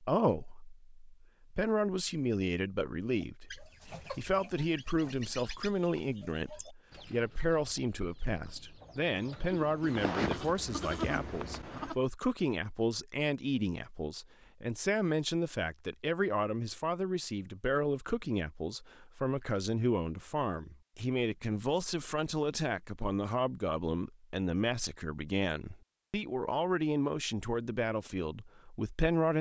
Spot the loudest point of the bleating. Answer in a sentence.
The loudest moment of the bleating is at 10 seconds.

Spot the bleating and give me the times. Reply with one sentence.
The bleating can be heard from 9.5 to 11.9 s.